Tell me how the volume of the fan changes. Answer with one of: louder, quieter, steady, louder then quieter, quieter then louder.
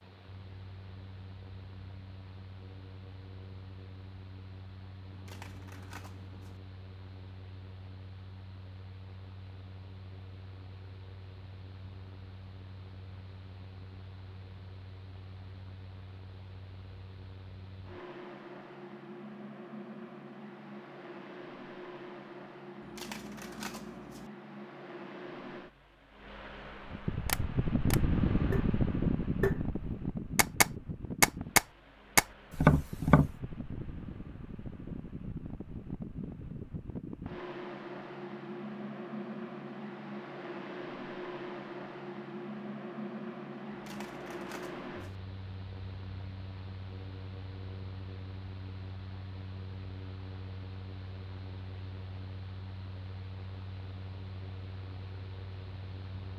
louder then quieter.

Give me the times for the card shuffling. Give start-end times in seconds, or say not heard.
5.1-6.6, 22.8-24.3, 43.7-45.2.